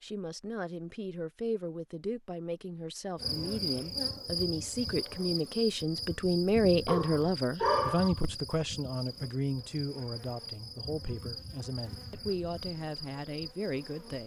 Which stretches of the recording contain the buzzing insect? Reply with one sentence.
The buzzing insect can be heard from 3.1 to 14.2 s.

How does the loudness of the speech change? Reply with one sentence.
The loudness of the speech goes up, then down.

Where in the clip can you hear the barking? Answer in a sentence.
The barking can be heard from 6.8 to 8.2 s.